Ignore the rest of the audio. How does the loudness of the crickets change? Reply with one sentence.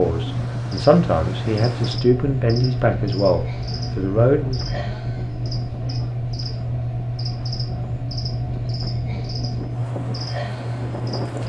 The volume of the crickets stays about the same.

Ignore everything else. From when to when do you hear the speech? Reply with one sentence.
You can hear the speech from 0.0 to 4.6 s.